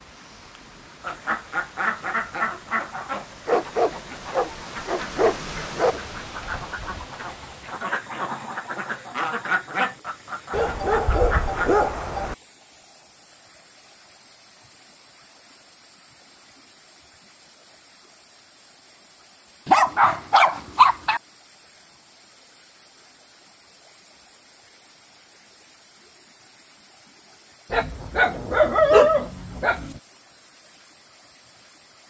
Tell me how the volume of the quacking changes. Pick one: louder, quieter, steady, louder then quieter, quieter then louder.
quieter then louder.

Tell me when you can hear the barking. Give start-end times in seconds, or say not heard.
3.5-6.0, 10.5-12.3, 19.6-21.2, 27.7-29.9.